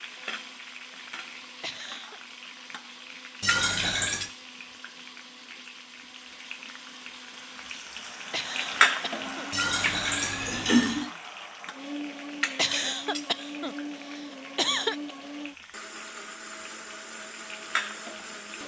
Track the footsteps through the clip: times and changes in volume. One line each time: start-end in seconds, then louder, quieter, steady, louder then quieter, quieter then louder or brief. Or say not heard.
not heard.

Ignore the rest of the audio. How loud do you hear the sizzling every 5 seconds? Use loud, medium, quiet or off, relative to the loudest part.
medium, loud, medium, medium.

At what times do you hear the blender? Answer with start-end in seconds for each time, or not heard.
0.0-18.6.